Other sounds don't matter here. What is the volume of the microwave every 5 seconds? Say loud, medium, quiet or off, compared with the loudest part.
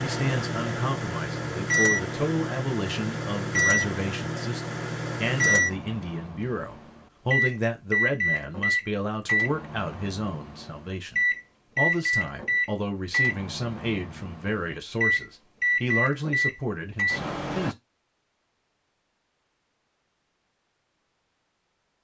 loud, loud, loud, loud, off.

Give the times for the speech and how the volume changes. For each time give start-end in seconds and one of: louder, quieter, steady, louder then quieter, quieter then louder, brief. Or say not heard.
0.0-17.8 steady.